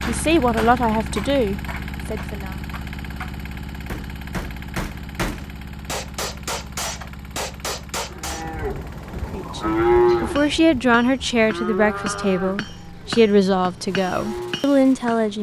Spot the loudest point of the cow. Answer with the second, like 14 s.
10 s.